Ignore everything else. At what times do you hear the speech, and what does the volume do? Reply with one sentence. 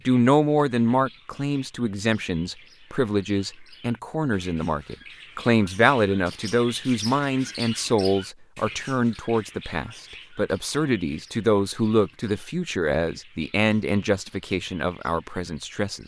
The speech can be heard from 0.1 to 16.0 s, at a steady volume.